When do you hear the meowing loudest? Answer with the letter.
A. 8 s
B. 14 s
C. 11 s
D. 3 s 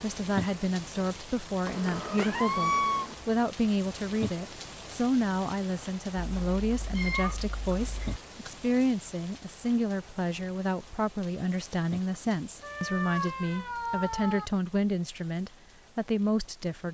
D.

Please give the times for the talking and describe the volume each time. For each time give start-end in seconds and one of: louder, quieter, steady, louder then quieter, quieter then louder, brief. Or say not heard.
0.0-16.8 steady.